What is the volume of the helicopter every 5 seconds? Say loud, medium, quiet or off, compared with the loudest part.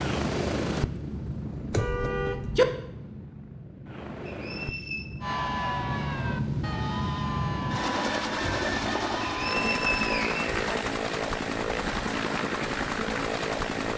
medium, loud, loud.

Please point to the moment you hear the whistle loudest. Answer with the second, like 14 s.
10 s.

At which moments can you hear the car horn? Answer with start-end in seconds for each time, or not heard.
1.7-2.6.